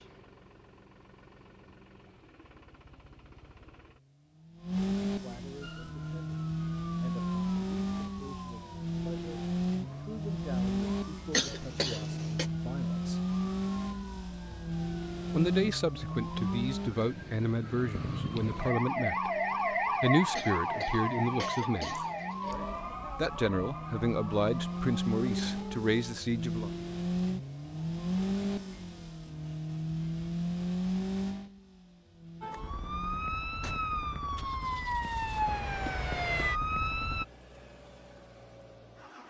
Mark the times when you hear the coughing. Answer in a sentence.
The coughing can be heard from 11.3 to 12.4 s and from 20.3 to 22.6 s.